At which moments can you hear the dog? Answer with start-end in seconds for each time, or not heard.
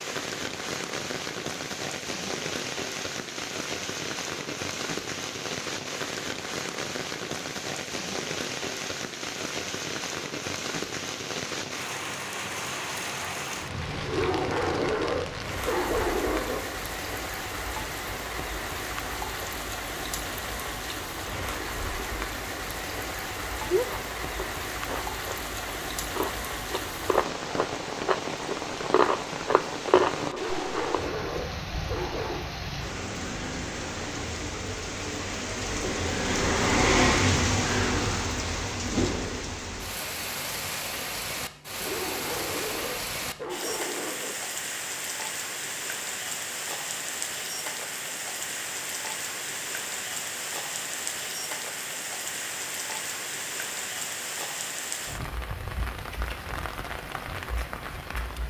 14.0-16.6, 30.2-32.5, 41.8-44.4.